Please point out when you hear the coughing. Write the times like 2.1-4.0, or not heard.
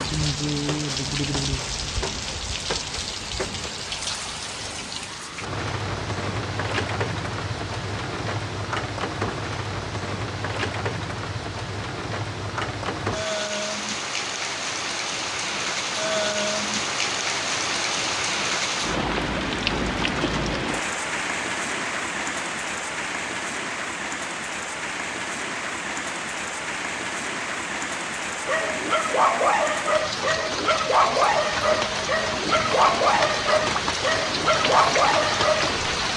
not heard.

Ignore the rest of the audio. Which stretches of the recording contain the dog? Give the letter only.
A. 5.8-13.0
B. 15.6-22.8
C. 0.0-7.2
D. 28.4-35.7
D.